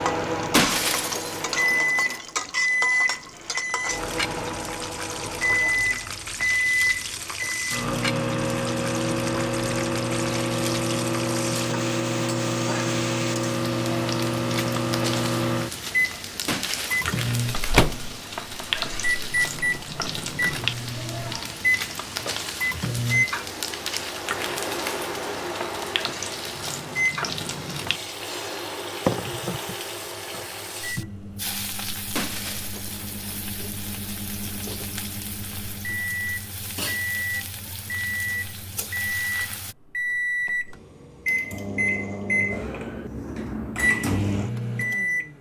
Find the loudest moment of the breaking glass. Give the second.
1 s.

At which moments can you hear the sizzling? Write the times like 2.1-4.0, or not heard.
0.0-39.8.